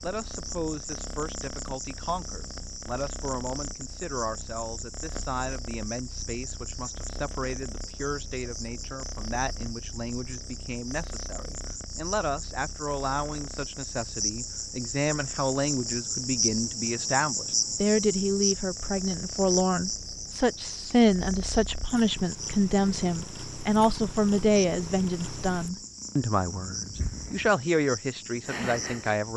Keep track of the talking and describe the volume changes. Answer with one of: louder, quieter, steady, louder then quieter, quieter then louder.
louder.